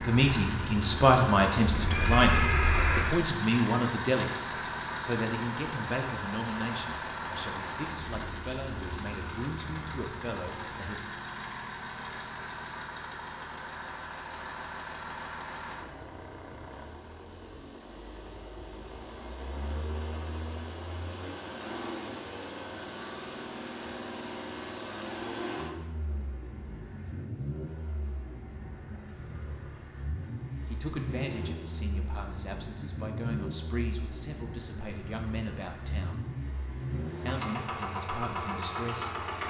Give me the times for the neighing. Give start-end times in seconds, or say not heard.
1.6-3.1.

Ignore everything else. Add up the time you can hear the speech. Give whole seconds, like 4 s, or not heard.
19 s.